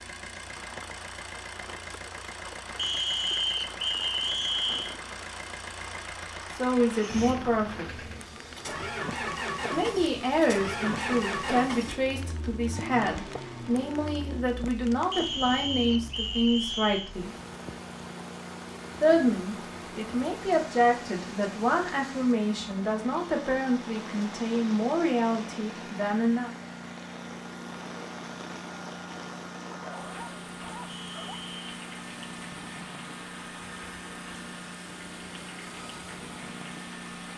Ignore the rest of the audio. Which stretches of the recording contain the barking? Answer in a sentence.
The barking can be heard from 29.7 to 31.4 s.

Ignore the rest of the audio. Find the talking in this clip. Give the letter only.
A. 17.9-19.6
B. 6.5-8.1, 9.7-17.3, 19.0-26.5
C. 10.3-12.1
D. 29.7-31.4
B.